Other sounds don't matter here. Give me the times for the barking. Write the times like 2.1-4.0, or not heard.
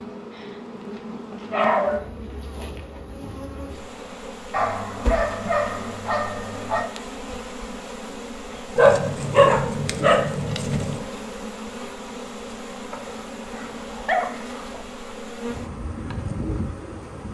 0.3-2.0, 4.5-6.8, 8.8-11.0, 12.9-14.8.